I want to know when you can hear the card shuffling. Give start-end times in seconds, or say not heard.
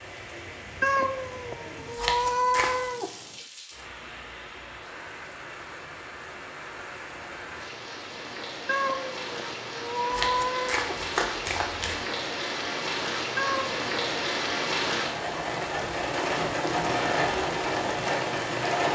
1.9-2.9, 10.1-12.1.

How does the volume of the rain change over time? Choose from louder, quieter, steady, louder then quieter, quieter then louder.
louder.